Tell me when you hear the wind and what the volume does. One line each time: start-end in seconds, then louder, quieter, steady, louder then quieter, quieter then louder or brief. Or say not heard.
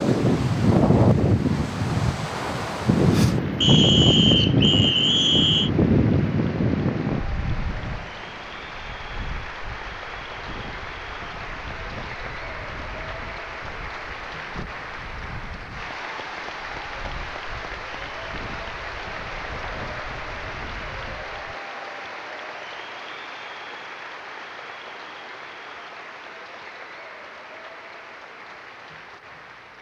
0.0-21.6 quieter.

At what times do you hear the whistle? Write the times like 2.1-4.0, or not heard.
3.6-5.7.